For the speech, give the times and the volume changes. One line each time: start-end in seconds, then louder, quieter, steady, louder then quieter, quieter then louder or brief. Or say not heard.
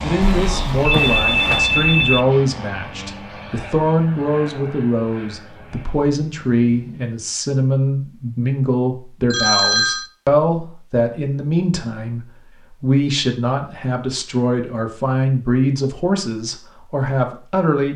0.0-17.9 steady.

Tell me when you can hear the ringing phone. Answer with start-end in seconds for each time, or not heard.
0.2-2.2, 9.3-10.1.